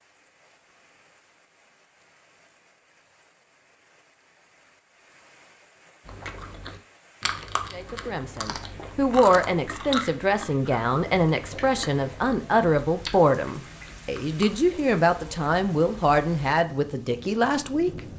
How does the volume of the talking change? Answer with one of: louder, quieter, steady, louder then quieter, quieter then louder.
steady.